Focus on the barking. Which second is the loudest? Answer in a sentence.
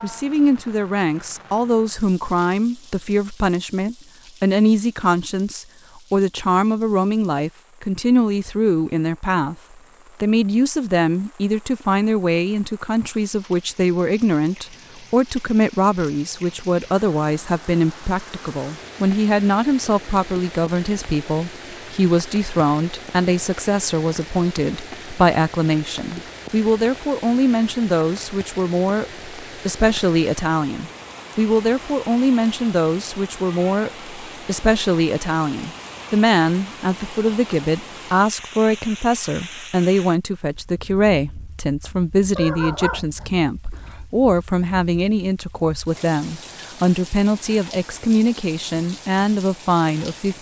The volume of the barking peaks at 43 seconds.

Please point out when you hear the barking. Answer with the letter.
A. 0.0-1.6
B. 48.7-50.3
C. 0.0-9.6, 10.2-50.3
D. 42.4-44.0
D.